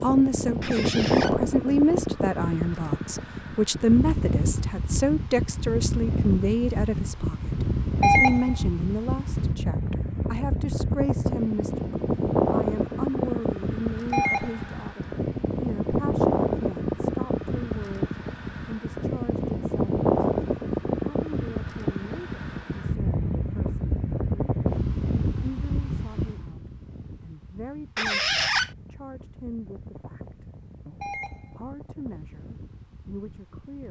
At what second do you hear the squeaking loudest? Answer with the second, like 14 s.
28 s.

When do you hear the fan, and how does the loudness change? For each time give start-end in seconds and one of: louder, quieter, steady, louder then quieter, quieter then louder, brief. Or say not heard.
0.0-33.8 quieter.